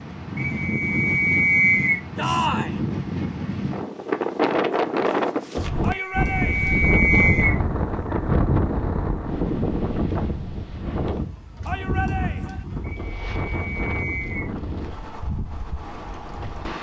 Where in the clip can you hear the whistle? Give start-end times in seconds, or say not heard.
0.3-2.0, 5.9-7.6, 12.8-14.5.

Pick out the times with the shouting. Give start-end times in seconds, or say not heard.
2.1-2.8, 5.8-6.8, 11.7-12.7.